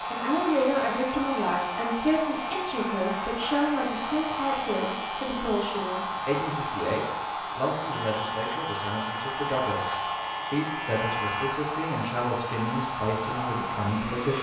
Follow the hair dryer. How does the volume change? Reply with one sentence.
The loudness of the hair dryer stays about the same.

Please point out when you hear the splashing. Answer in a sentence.
You can't hear the splashing here.